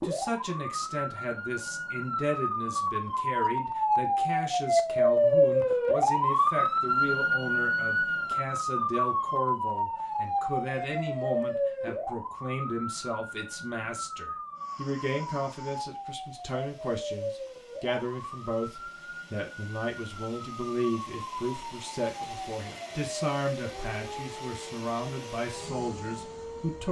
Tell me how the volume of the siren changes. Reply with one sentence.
The volume of the siren goes down.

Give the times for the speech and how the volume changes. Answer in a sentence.
The speech can be heard from 0.0 to 26.8 s, at a steady volume.